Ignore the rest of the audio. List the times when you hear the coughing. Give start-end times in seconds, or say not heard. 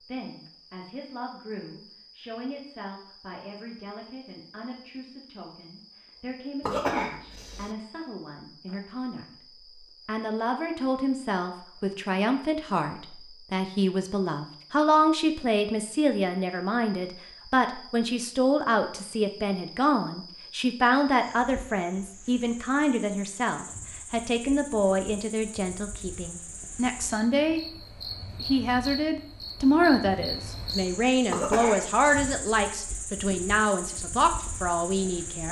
6.6-7.8, 31.3-32.2.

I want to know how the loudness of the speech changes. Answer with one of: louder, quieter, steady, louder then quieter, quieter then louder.
louder.